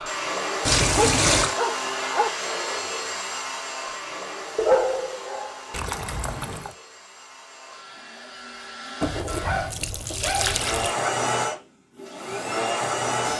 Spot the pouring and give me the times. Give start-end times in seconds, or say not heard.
0.7-1.6, 5.7-6.8, 9.0-10.9.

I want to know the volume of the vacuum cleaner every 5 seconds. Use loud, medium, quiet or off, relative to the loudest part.
loud, quiet, loud.